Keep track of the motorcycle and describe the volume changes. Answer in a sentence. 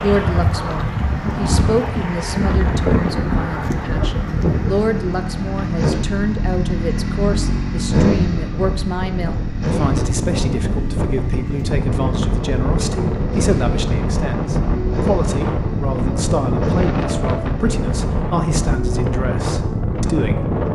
The loudness of the motorcycle goes up, then down.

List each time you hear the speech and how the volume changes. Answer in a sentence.
You can hear the speech from 0.0 to 20.5 s, at a steady volume.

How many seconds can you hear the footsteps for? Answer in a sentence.
The footsteps can't be heard in this clip.